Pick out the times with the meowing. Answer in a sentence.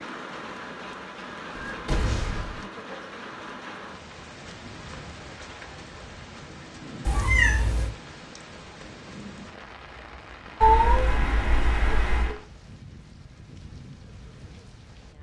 The meowing can be heard from 1.6 to 2.6 s, from 7.0 to 7.9 s and from 10.6 to 12.3 s.